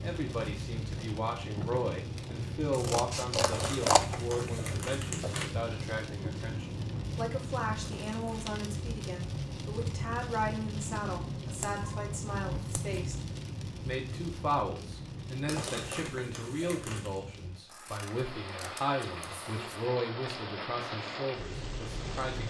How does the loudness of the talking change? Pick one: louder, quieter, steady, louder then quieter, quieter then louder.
steady.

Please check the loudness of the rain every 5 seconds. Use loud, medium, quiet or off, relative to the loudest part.
loud, loud, loud, medium, loud.